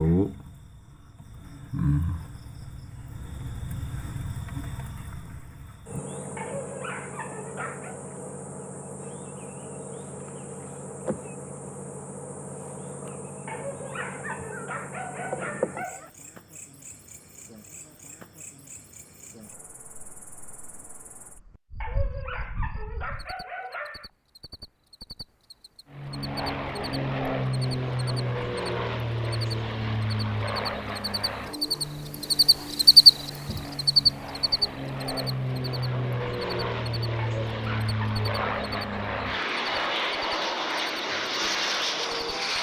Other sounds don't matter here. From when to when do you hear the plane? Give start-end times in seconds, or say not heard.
25.9-42.5.